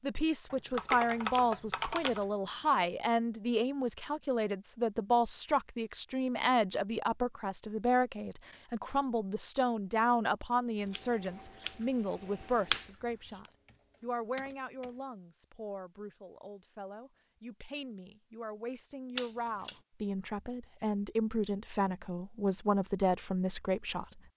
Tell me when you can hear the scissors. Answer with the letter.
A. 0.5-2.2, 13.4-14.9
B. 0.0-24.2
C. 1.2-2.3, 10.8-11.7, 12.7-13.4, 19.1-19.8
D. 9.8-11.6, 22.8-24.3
C.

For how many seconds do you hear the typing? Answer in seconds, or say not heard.
3 s.